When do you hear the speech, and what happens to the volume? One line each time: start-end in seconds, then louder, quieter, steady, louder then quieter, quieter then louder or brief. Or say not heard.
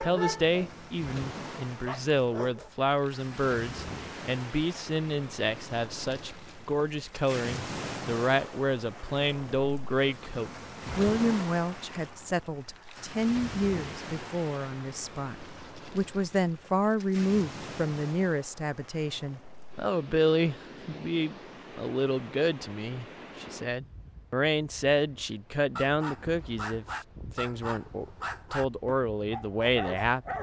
0.0-30.3 steady.